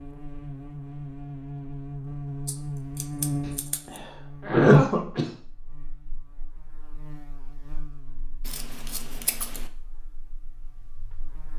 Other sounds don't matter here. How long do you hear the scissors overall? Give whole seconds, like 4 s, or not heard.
3 s.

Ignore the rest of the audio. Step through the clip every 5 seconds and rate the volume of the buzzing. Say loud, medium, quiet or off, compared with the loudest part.
loud, quiet, quiet.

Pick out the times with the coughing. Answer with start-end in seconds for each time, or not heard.
3.9-5.3.